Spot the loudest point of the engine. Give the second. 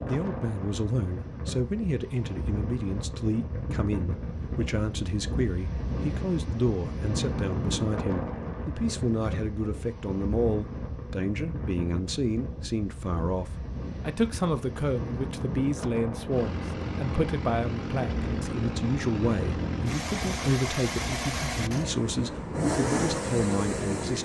23 s.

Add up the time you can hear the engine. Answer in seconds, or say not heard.
8 s.